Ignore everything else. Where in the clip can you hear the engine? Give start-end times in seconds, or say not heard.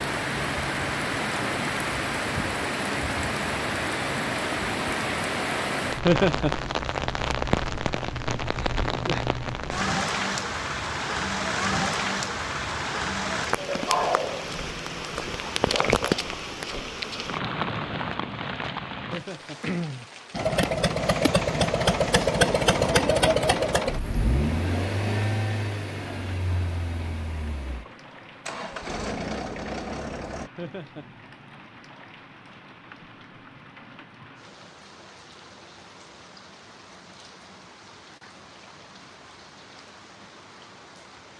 20.3-30.5.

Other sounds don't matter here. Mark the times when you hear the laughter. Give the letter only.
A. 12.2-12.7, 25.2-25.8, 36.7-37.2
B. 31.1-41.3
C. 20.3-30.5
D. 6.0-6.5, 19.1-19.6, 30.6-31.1
D.